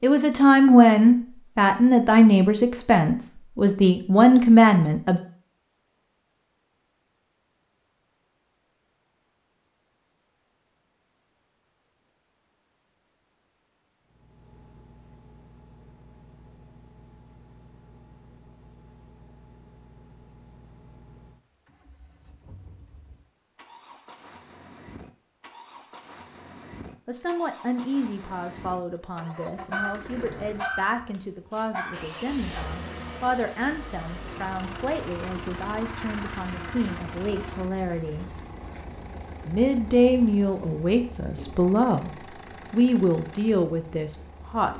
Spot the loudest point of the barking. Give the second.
30 s.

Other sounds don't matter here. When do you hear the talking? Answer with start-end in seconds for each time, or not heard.
0.0-5.2, 27.1-38.4, 39.5-44.7.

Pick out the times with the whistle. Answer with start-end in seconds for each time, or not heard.
not heard.